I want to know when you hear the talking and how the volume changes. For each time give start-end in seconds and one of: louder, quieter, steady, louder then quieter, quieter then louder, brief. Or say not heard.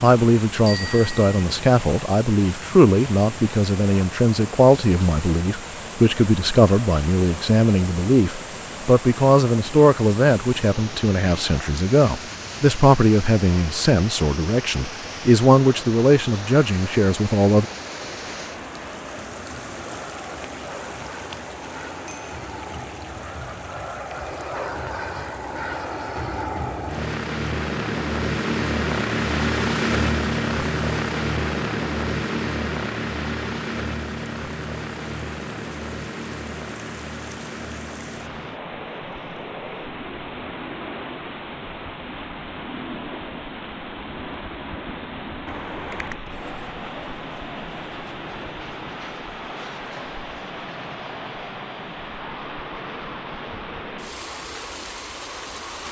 0.0-17.6 steady.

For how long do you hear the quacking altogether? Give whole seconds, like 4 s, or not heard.
not heard.